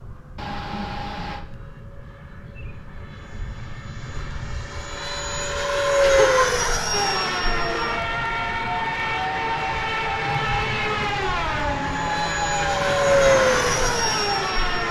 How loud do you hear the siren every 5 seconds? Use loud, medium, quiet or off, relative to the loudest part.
off, loud, loud.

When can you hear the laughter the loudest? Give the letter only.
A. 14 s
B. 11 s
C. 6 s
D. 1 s
C.